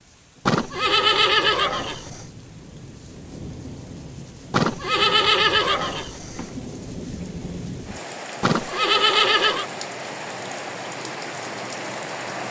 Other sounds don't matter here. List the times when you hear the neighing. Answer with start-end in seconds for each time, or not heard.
0.5-2.2, 4.5-6.5, 8.4-9.7.